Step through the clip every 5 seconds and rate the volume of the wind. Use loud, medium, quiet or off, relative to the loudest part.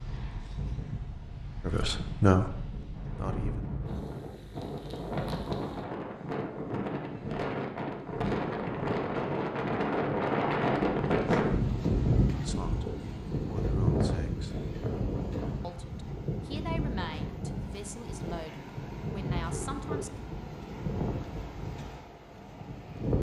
medium, loud, loud, medium, medium.